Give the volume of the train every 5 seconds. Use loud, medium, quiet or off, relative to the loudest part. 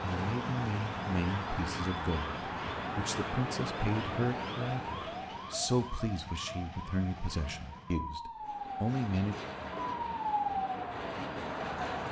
loud, medium, loud.